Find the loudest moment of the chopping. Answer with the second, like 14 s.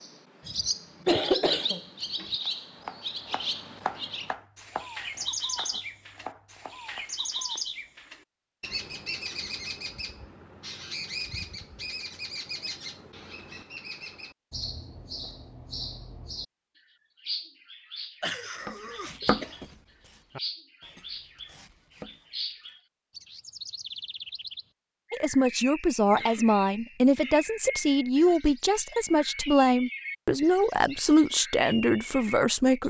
19 s.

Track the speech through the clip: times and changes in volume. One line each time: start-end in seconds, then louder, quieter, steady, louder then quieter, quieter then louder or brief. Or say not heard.
25.1-32.8 steady.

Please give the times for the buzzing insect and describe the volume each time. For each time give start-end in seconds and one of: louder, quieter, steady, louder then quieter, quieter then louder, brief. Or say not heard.
not heard.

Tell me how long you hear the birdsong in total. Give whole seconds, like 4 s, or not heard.
32 s.